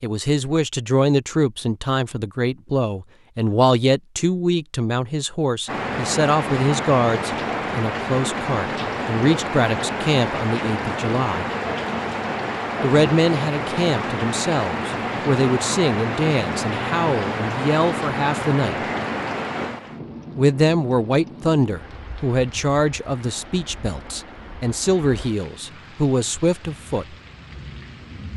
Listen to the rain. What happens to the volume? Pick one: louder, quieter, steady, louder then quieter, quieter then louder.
quieter.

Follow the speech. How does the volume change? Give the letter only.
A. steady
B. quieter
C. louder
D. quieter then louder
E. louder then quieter
A.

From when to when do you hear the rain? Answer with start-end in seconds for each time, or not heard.
5.7-28.3.